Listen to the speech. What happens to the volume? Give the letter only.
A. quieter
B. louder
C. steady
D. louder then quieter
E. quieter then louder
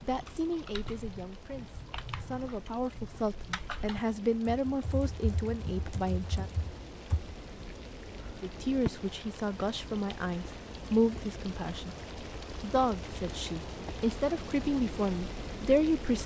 B.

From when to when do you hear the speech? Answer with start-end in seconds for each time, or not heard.
0.0-6.5, 8.4-11.9, 12.6-16.2.